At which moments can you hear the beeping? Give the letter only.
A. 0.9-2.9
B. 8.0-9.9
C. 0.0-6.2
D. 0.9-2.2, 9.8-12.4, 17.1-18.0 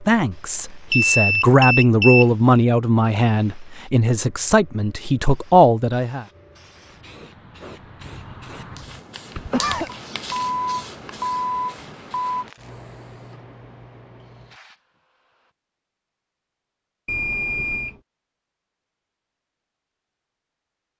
D.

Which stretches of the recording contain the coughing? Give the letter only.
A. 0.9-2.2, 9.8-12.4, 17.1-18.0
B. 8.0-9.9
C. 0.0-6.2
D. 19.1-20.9
B.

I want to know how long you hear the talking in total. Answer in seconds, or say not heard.
6 s.